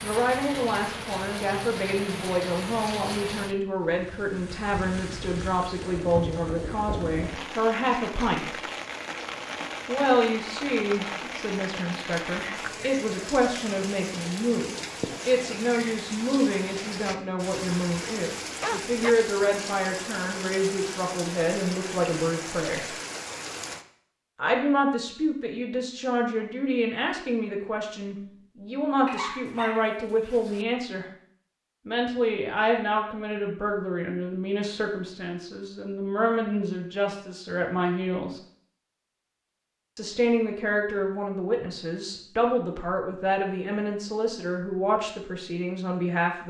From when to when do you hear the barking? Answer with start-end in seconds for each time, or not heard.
18.6-19.1, 29.1-30.6.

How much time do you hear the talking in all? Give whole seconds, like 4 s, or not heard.
41 s.